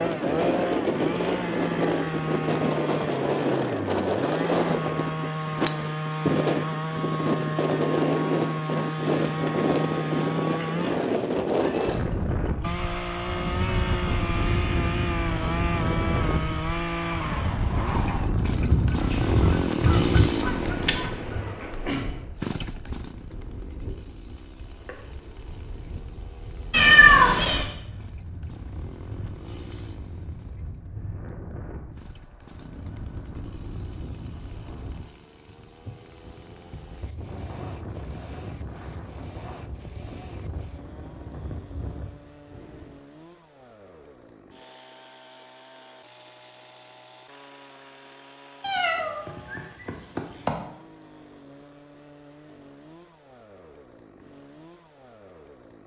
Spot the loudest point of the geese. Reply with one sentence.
The loudest moment of the geese is at 20 seconds.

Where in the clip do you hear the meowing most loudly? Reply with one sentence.
The volume of the meowing peaks at 27 seconds.